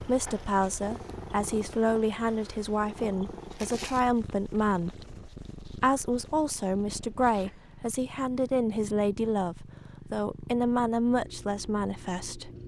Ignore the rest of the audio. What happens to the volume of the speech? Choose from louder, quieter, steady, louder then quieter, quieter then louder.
steady.